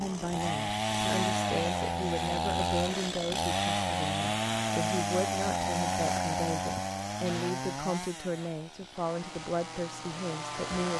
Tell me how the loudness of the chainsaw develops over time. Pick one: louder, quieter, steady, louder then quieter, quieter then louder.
quieter.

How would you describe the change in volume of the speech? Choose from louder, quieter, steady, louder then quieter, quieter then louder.
steady.